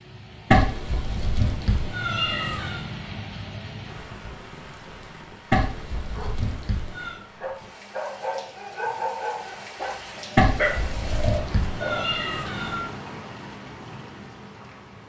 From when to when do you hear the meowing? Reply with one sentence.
The meowing can be heard from 0.5 to 2.8 s, from 5.5 to 7.2 s and from 10.3 to 12.8 s.